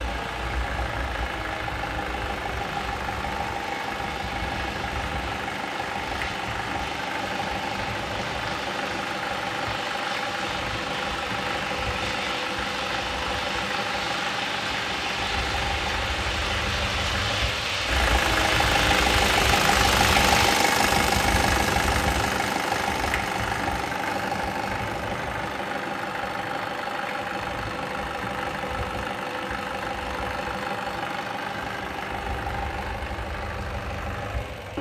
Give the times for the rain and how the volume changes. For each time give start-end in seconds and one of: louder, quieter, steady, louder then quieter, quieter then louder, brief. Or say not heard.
0.0-20.7 louder.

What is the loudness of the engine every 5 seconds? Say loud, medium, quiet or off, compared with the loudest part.
medium, medium, medium, loud, loud, medium, medium.